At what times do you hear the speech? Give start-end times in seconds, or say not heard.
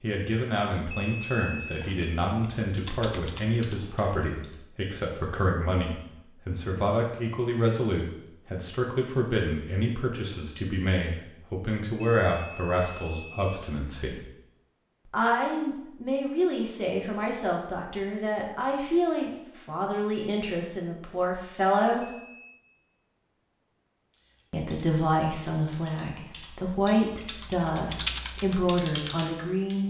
0.0-14.2, 15.1-22.1, 24.5-29.8.